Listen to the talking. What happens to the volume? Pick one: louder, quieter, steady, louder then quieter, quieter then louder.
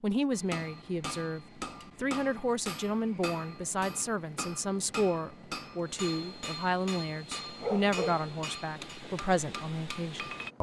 steady.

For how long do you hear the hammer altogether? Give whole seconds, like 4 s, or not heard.
10 s.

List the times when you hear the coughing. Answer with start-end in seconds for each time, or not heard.
not heard.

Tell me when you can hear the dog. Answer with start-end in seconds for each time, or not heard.
7.6-8.2.